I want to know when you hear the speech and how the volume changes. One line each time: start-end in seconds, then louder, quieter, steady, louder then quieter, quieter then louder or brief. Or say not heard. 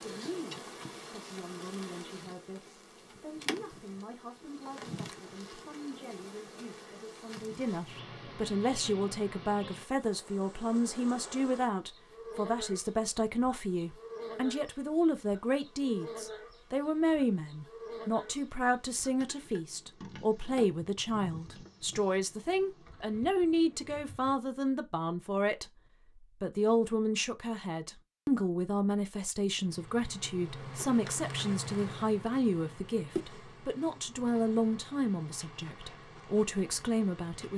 0.0-37.5 louder.